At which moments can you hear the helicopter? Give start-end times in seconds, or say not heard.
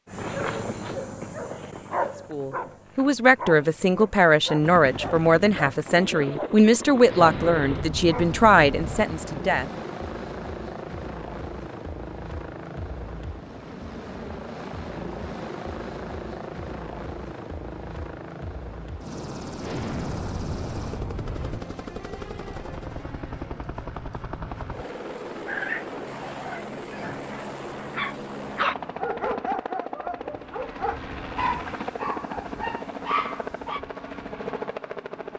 4.6-35.3.